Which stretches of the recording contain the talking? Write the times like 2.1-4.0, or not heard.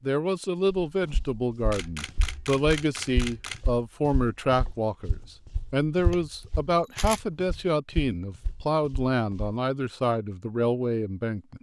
0.0-11.5.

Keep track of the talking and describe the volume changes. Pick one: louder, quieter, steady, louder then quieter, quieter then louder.
steady.